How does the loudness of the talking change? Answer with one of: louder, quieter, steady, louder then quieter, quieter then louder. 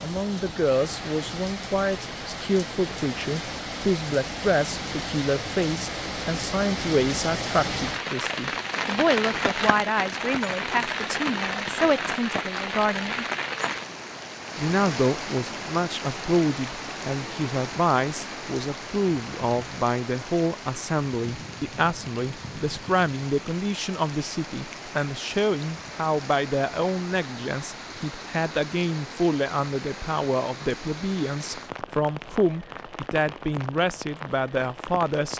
steady.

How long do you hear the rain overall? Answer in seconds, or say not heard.
35 s.